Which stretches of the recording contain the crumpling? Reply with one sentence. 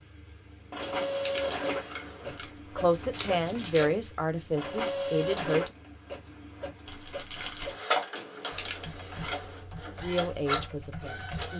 You can hear the crumpling from 3.1 to 4.0 s and from 6.8 to 7.8 s.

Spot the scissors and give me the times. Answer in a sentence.
The scissors can be heard from 0.8 to 2.5 s and from 8.1 to 9.7 s.